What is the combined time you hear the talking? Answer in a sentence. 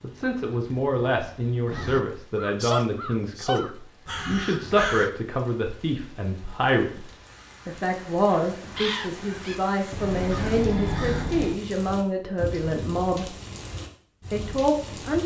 You can hear the talking for 14 seconds altogether.